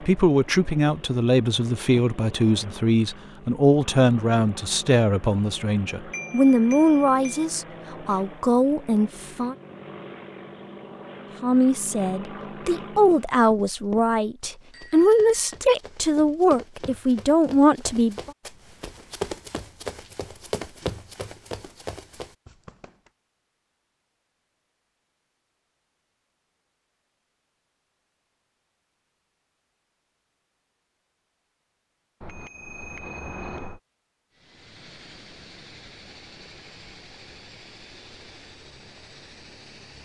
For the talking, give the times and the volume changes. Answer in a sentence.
The talking can be heard from 0.0 to 9.6 s, at a steady volume; and from 11.4 to 18.3 s, getting louder.